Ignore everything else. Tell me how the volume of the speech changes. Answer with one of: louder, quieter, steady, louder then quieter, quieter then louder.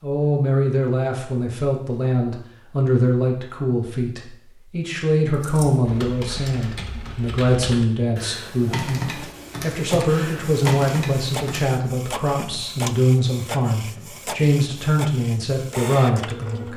steady.